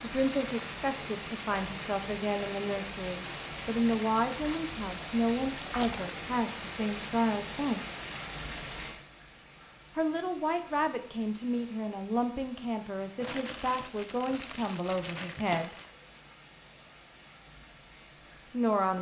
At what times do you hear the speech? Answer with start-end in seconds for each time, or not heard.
0.0-7.9, 9.9-15.8, 18.1-18.9.